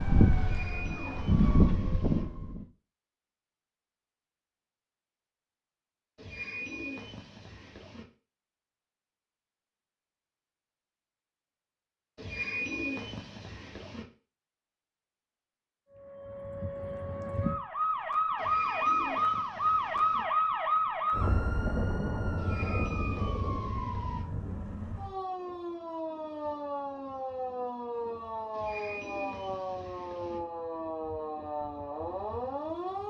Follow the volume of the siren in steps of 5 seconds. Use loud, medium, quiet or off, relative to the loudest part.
loud, off, off, loud, loud, medium, medium.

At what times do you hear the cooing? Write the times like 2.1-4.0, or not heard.
0.3-2.2, 6.2-8.1, 12.2-14.1, 18.4-20.2, 22.4-24.2, 28.5-30.4.